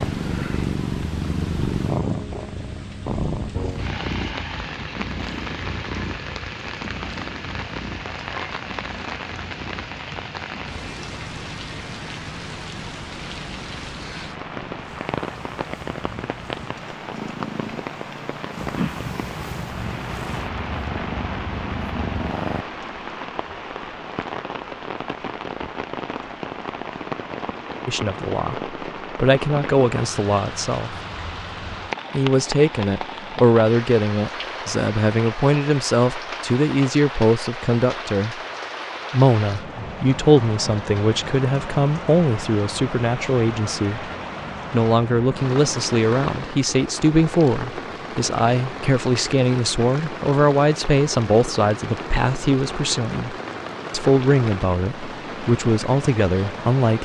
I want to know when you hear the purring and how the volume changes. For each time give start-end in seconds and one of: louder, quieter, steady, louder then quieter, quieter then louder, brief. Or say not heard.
0.0-22.6 quieter then louder.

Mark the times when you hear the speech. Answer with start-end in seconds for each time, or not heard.
27.9-30.9, 32.1-38.4, 39.1-44.1, 44.7-56.9.